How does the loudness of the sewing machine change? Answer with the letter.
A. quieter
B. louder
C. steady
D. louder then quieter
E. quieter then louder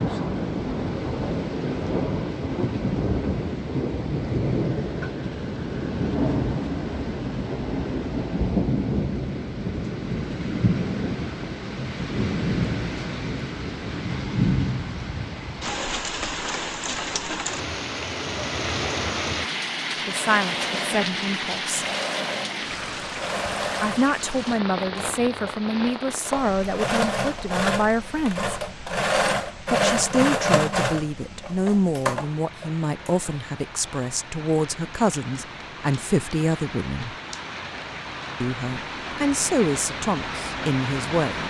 B.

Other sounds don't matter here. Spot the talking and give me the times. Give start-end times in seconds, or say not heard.
20.1-21.9, 23.8-28.6, 29.7-37.1, 38.4-41.4.